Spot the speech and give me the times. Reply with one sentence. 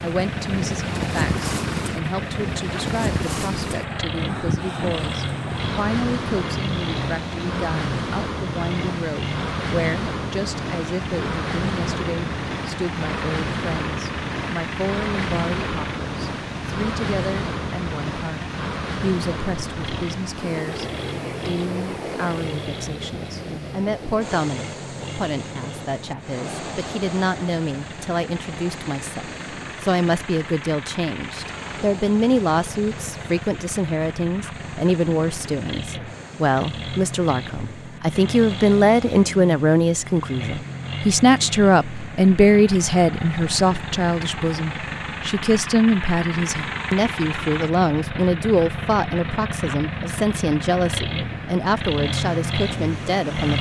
You can hear the speech from 0.0 to 53.5 s.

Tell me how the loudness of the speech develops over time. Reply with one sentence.
The loudness of the speech goes up.